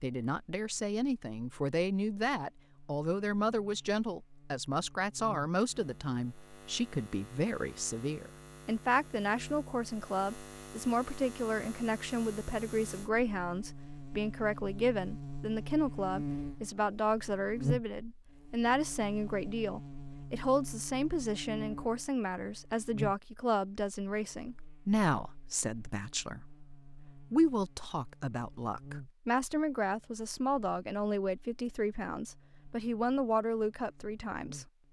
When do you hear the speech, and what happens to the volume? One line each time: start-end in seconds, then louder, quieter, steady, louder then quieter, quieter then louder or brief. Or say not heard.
0.0-34.6 steady.